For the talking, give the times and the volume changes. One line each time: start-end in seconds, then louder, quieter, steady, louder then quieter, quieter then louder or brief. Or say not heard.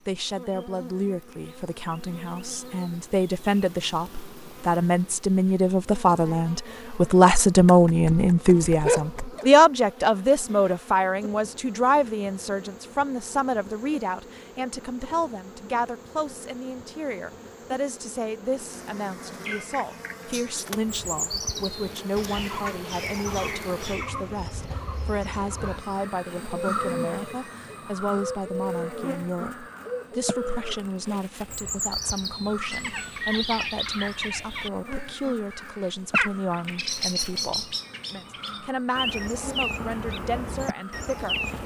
0.1-41.4 quieter.